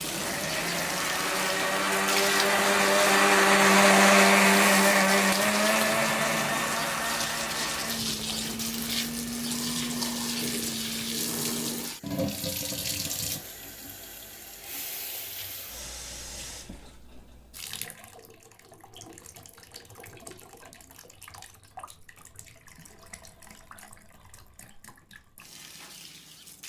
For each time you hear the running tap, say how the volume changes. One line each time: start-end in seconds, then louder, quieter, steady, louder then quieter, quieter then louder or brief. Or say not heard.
0.0-26.6 quieter.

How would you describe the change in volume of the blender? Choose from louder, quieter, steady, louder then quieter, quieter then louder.
louder then quieter.